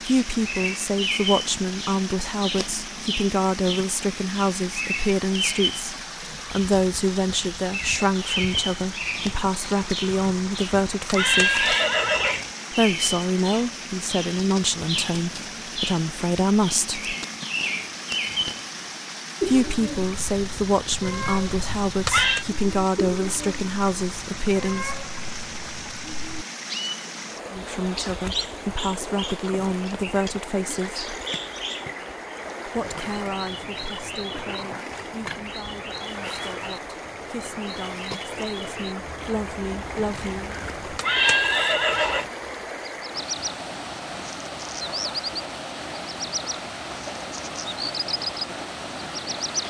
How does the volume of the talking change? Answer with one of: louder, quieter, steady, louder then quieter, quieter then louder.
quieter.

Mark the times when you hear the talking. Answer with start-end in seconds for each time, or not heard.
0.1-11.7, 12.7-17.1, 19.4-24.9, 27.5-31.1, 32.6-40.5.